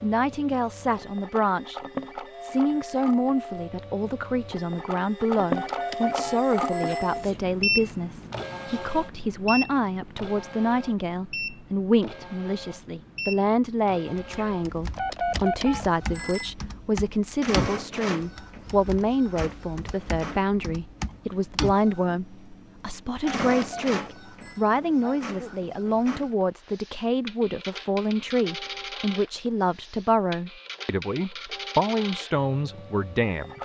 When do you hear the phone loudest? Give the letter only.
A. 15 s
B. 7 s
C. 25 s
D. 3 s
A.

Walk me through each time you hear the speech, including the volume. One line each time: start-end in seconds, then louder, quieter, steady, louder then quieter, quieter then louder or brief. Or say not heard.
0.0-1.8 brief
2.4-33.6 steady.